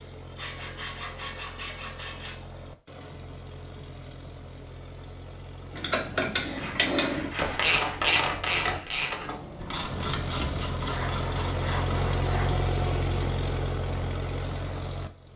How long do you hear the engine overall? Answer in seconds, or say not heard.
15 s.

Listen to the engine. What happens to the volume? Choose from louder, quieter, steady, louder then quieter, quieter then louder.
louder.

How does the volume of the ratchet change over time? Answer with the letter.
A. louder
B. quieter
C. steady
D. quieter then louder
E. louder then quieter
B.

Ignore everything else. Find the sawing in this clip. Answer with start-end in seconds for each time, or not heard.
0.3-2.4, 6.5-8.1, 10.8-12.5.